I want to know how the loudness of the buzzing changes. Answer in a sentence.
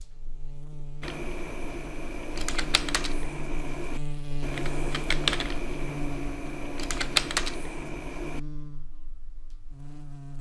The loudness of the buzzing goes up, then down.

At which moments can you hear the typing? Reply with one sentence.
You can hear the typing from 1.0 to 8.4 s.